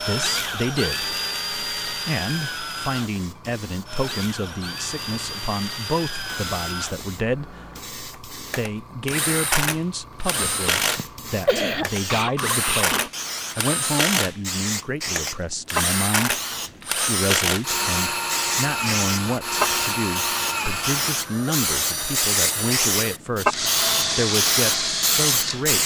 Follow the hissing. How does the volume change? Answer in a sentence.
The volume of the hissing goes up.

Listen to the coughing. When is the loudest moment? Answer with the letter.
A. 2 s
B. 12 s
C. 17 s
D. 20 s
B.